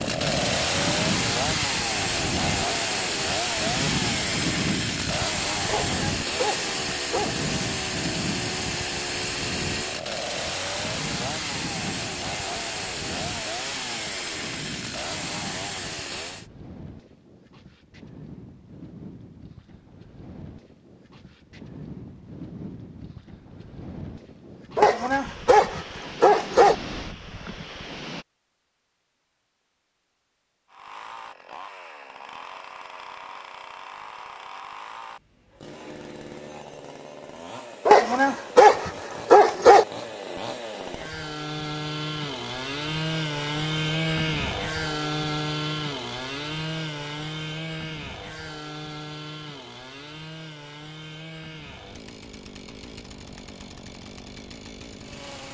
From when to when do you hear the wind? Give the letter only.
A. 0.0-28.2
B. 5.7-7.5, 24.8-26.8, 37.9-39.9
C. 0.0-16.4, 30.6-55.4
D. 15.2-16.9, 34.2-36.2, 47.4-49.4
A.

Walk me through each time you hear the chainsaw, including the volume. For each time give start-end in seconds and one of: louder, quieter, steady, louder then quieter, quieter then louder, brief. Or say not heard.
0.0-16.4 quieter
30.6-55.4 louder then quieter.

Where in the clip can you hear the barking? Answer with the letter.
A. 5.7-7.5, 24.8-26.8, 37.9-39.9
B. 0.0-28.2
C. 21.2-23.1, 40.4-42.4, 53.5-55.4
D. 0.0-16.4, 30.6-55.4
A.